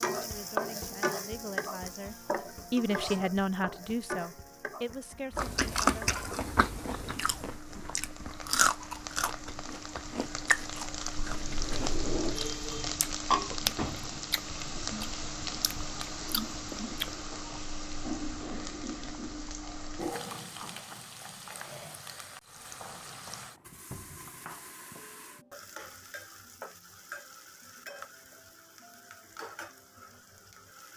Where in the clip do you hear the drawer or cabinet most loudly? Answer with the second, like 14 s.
12 s.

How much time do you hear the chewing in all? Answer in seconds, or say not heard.
12 s.